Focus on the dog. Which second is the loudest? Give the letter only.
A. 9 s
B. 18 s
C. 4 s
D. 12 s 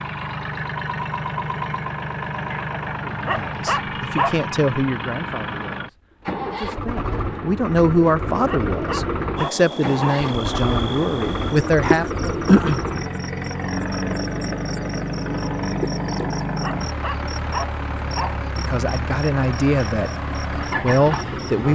C.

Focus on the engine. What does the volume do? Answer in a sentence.
The volume of the engine stays about the same.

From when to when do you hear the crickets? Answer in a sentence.
You can hear the crickets from 9.3 to 21.5 s.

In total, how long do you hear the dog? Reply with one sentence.
You can hear the dog for 5 seconds altogether.